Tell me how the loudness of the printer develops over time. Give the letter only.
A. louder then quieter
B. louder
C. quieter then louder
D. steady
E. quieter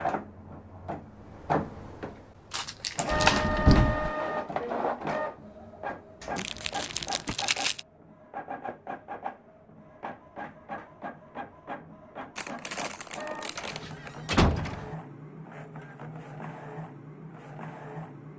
E.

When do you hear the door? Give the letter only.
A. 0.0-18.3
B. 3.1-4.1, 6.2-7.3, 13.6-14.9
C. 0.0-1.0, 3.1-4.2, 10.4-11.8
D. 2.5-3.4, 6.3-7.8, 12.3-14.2
B.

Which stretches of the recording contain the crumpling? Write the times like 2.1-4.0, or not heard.
2.5-3.4, 6.3-7.8, 12.3-14.2.